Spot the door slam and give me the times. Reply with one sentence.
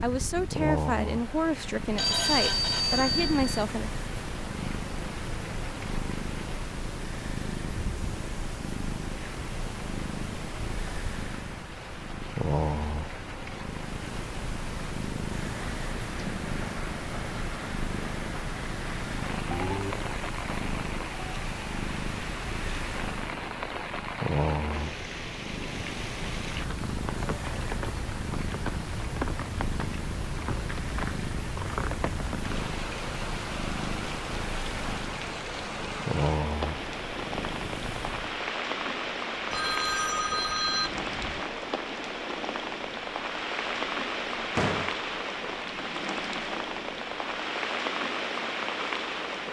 You can hear the door slam from 44.5 to 45.0 s.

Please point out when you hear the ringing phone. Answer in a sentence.
You can hear the ringing phone from 1.9 to 3.6 s, from 19.5 to 19.9 s and from 39.5 to 41.4 s.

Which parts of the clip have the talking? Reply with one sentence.
You can hear the talking from 0.0 to 3.9 s.